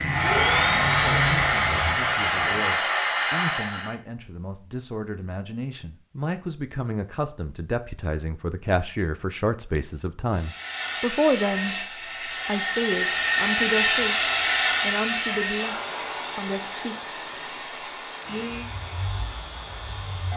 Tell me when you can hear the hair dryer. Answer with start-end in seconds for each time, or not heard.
0.1-4.0, 10.3-20.3.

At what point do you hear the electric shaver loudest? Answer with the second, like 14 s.
1 s.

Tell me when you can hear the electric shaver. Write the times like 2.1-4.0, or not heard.
0.0-2.6, 18.2-20.3.